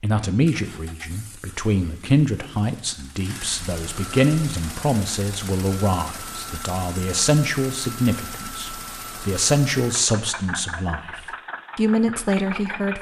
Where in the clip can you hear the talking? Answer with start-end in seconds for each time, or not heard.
0.0-11.0, 11.8-12.9.